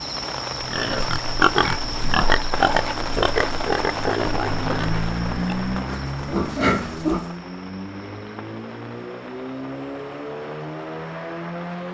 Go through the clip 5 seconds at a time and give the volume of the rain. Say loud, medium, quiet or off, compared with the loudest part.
loud, medium, quiet.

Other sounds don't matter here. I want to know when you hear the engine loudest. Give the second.
5 s.